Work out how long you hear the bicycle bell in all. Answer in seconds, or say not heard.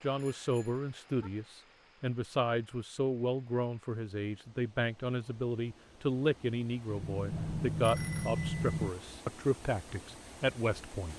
3 s.